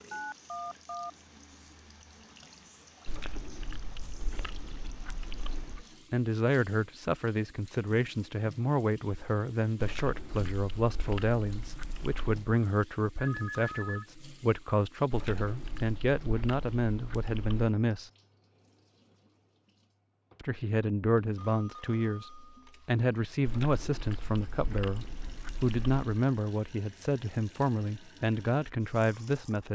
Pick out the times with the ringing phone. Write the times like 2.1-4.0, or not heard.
0.1-1.1, 13.2-14.1, 21.4-22.9.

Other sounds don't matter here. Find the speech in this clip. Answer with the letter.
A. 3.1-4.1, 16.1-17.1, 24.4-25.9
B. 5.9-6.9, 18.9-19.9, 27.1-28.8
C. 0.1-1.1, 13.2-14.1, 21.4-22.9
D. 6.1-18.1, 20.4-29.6
D.